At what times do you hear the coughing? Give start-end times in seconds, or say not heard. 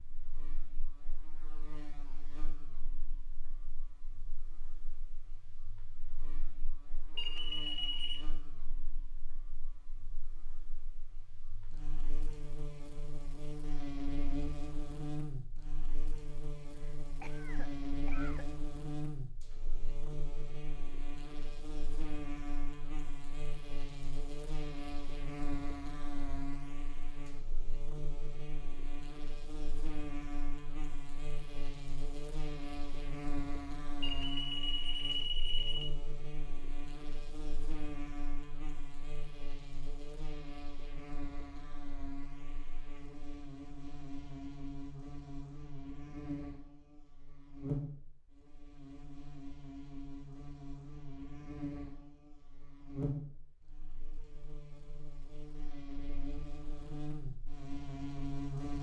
16.8-18.6.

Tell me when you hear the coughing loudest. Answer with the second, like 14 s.
18 s.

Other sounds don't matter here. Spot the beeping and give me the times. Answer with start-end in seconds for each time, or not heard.
7.2-8.2, 34.0-35.9.